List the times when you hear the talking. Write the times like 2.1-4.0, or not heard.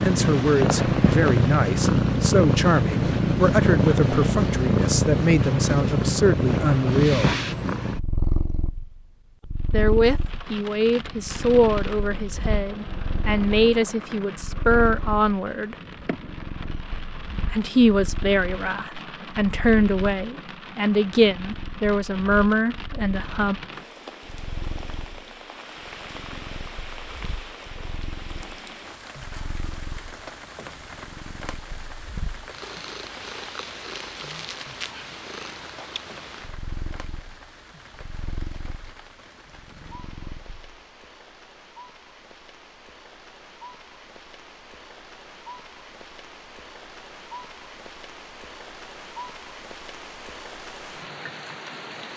0.0-7.3, 9.7-15.8, 17.5-23.6.